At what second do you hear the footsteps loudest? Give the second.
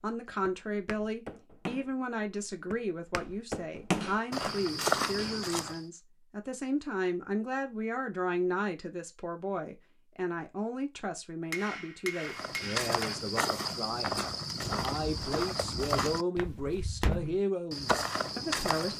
5 s.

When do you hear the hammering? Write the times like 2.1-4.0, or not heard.
4.0-5.5, 11.5-13.2.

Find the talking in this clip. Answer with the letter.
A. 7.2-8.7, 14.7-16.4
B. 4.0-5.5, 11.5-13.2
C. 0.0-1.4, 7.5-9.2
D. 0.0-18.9
D.